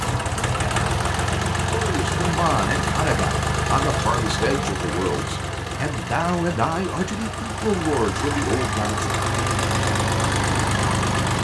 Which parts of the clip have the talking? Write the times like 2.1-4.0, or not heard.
1.7-9.2.